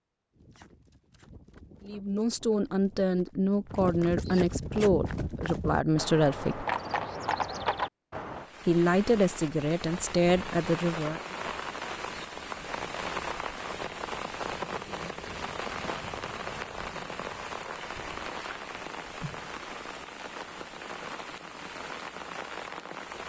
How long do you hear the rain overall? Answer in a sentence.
You can hear the rain for 15 seconds altogether.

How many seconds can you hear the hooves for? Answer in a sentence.
The hooves can be heard for 8 seconds in total.